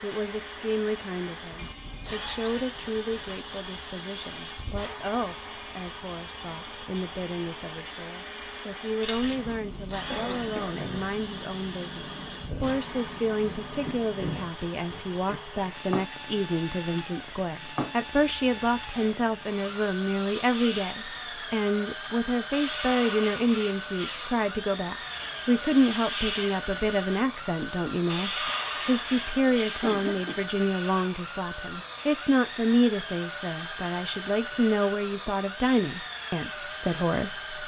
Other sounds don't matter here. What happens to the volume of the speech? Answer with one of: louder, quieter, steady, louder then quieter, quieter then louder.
louder.